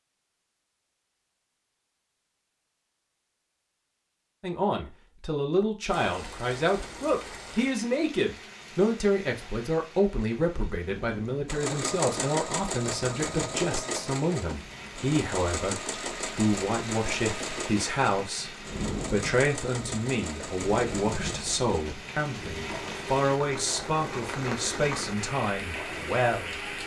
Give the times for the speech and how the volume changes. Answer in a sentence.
You can hear the speech from 4.4 to 26.6 s, at a steady volume.